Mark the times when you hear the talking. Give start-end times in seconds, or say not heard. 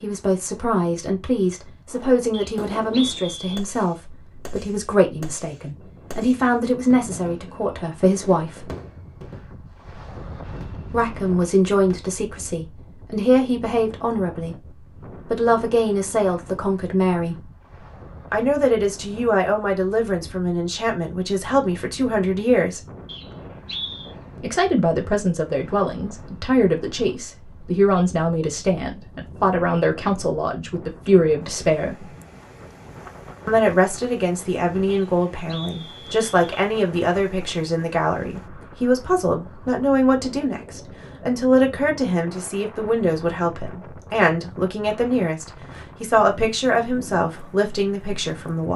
0.0-8.7, 10.9-14.6, 15.2-17.4, 18.3-22.8, 24.4-32.1, 33.5-48.7.